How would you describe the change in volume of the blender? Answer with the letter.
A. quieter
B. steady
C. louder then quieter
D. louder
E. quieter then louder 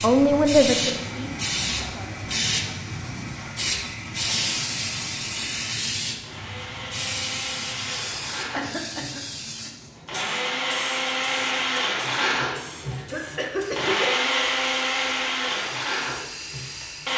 D.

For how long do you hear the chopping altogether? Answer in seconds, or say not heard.
not heard.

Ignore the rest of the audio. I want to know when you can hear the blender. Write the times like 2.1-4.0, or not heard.
0.0-17.1.